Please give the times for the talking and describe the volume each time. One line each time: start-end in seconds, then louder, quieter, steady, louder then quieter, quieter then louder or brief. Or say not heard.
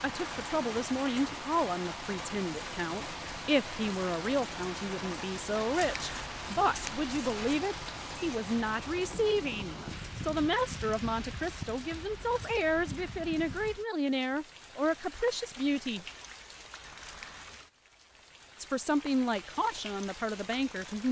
0.0-16.1 steady
18.6-21.0 brief.